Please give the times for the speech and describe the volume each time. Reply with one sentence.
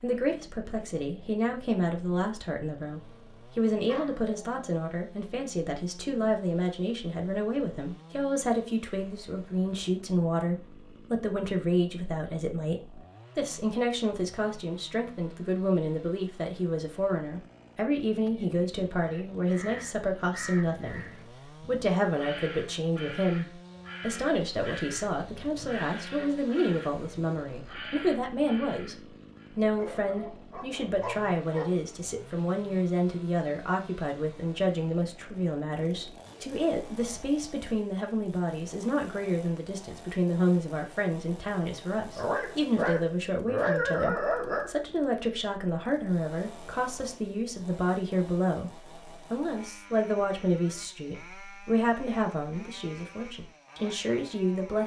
The speech can be heard from 0.0 to 21.1 s, at a steady volume; and from 21.6 to 54.8 s, at a steady volume.